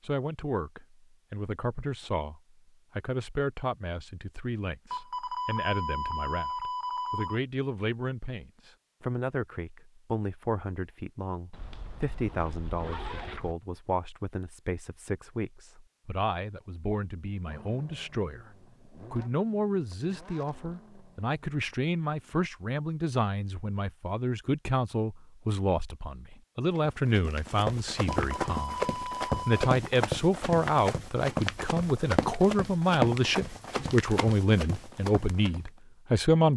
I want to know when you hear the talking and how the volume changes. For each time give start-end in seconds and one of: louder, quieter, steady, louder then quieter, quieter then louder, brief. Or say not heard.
0.0-36.5 louder.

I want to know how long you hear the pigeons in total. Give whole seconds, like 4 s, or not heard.
not heard.